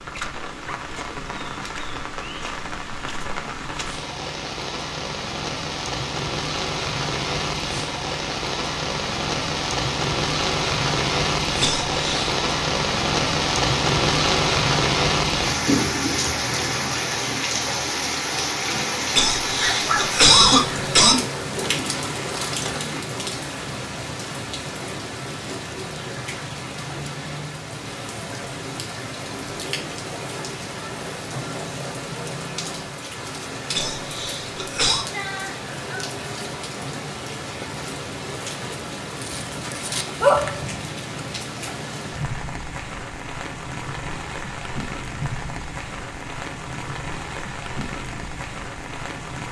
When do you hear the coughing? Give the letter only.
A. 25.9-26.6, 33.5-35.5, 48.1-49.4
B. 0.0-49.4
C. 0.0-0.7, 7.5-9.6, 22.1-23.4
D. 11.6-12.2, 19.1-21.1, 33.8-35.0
D.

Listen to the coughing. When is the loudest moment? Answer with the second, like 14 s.
20 s.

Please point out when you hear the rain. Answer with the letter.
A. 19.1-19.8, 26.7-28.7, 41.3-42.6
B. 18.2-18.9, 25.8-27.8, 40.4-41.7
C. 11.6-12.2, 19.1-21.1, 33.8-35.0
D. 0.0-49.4
D.